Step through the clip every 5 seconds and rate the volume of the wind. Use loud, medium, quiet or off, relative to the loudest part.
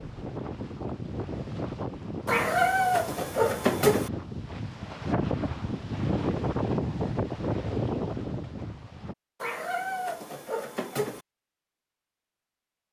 medium, loud, off.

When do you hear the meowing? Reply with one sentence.
You can hear the meowing from 2.2 to 4.1 s and from 9.4 to 11.2 s.